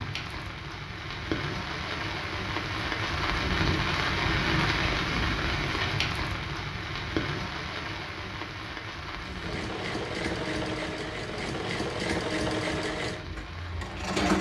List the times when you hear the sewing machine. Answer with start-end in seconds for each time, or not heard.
9.2-14.3.